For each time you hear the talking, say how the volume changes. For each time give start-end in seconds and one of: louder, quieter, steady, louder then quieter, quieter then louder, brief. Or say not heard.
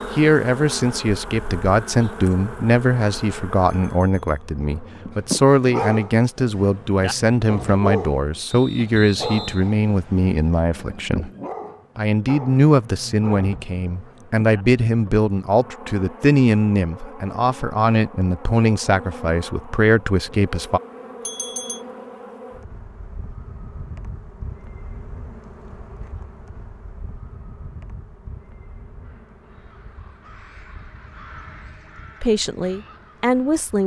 0.1-11.3 steady
11.9-20.8 steady
32.2-33.8 brief.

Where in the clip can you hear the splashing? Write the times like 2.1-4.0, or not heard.
not heard.